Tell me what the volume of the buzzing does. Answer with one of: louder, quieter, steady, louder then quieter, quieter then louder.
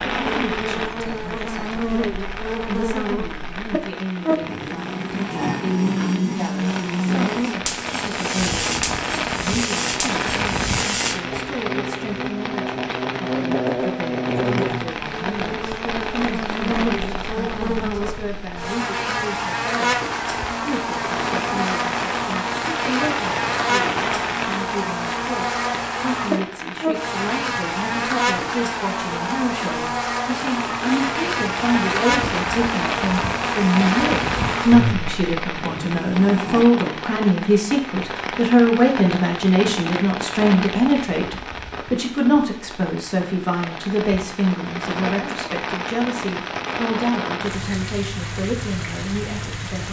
steady.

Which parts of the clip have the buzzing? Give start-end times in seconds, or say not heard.
0.1-36.6.